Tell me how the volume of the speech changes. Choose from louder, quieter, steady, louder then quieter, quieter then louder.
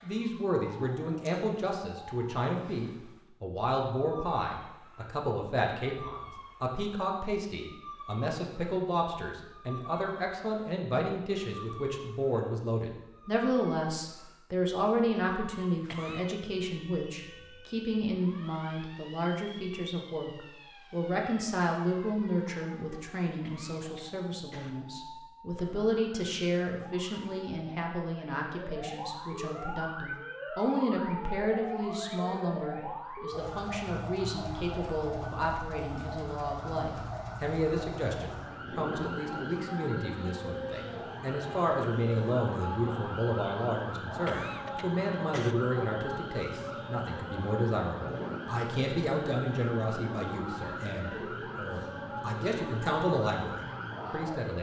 steady.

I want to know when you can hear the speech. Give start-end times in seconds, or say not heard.
0.0-54.5.